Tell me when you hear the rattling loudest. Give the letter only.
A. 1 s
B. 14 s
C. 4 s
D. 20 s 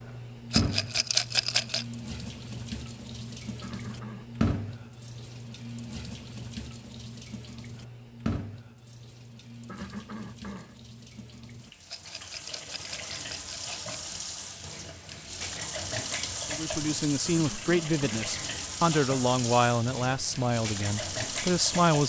A.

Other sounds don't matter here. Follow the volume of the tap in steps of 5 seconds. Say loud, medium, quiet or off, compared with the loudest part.
loud, medium, medium, loud, loud.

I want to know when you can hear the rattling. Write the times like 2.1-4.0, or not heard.
0.5-1.9, 11.8-13.9.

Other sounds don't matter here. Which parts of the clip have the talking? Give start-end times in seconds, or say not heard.
16.5-22.0.